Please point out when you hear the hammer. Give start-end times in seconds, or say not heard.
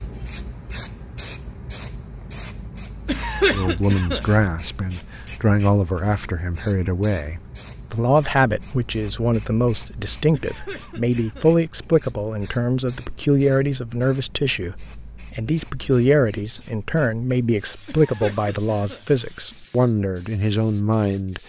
not heard.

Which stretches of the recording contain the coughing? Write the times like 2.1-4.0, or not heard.
3.0-4.2, 10.3-11.5, 17.9-19.1.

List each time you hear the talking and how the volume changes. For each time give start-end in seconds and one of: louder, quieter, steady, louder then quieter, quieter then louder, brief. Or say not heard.
3.5-21.4 steady.